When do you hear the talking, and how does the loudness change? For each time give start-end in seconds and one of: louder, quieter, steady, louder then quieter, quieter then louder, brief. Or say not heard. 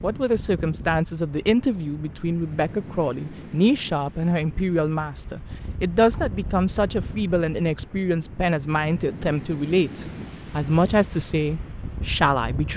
0.0-12.7 steady.